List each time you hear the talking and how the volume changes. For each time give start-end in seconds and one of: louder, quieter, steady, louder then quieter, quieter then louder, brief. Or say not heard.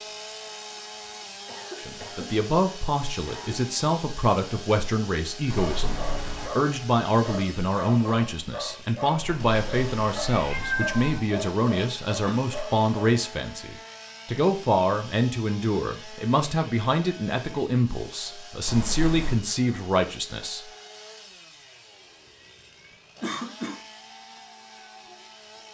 1.8-20.6 steady.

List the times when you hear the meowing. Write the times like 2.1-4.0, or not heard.
5.5-6.5, 9.2-11.2, 18.6-19.4.